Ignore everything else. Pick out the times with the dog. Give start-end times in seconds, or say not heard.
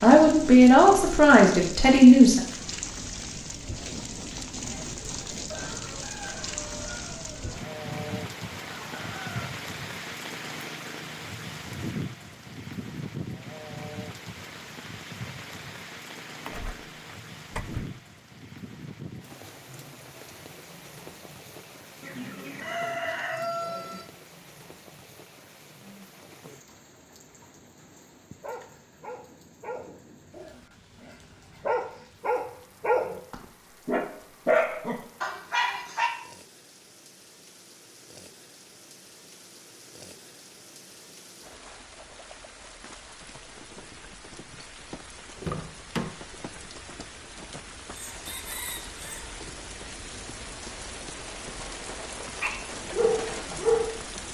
28.4-36.1, 52.4-54.0.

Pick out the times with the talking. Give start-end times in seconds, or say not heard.
0.0-2.4.